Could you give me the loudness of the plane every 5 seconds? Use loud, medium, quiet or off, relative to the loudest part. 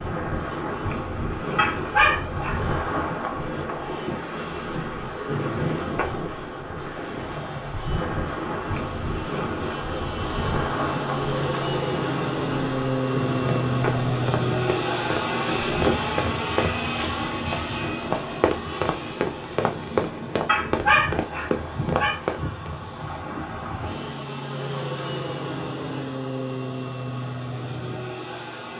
quiet, quiet, loud, loud, medium, medium.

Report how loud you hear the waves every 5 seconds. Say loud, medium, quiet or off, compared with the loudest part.
loud, loud, loud, medium, medium, off.